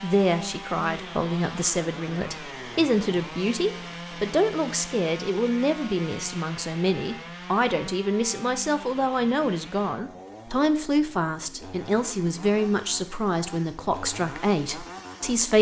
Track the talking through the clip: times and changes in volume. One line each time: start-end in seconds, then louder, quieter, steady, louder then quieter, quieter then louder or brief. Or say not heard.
0.0-15.5 steady.